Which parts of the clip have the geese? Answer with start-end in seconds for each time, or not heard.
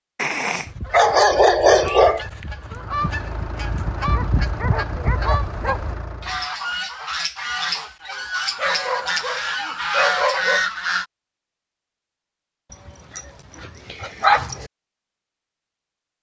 0.7-11.1.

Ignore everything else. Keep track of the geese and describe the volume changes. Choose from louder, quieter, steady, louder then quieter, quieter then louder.
louder.